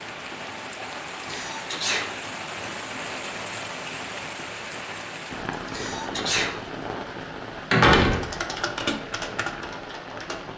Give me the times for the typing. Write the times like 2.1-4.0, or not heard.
8.1-10.4.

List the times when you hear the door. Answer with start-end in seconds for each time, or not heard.
7.7-8.8.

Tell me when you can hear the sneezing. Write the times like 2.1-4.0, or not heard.
1.2-2.1, 5.5-6.5.